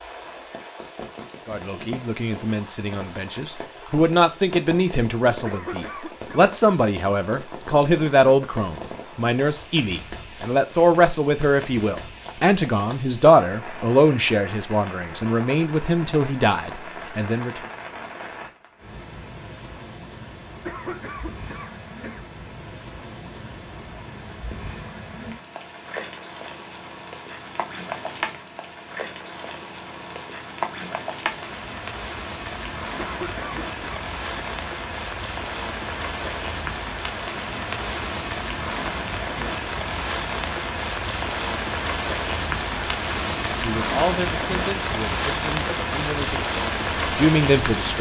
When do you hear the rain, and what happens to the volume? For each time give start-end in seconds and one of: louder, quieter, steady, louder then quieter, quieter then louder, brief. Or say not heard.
0.0-47.9 louder.